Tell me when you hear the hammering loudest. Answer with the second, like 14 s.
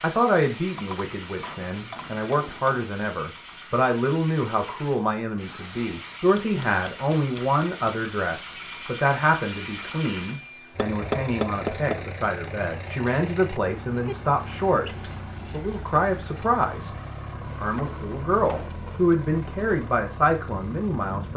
11 s.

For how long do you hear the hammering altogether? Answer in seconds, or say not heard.
6 s.